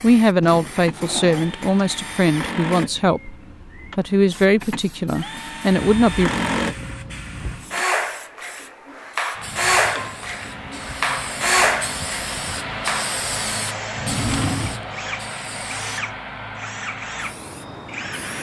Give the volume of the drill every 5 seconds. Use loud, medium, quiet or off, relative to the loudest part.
medium, loud, loud, medium.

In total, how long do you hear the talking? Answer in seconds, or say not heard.
6 s.